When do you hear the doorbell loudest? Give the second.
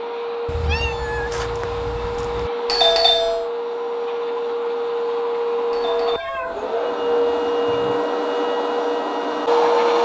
3 s.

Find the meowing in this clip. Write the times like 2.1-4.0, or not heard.
0.5-2.5, 6.1-8.1.